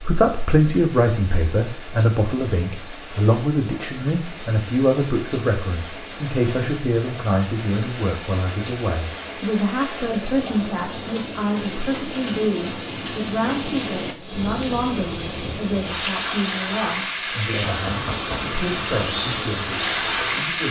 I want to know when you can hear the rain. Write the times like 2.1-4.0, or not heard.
0.0-20.6.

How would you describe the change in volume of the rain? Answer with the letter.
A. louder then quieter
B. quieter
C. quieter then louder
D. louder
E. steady
D.